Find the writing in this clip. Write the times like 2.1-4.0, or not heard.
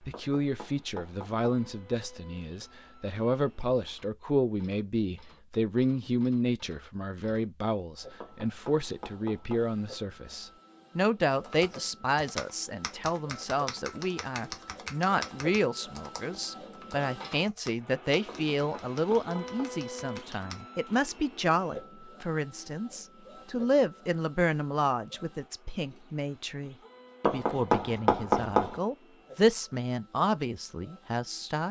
0.1-1.4, 8.2-9.8, 18.2-19.8, 27.2-28.8.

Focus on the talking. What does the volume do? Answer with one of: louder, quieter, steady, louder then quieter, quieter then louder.
steady.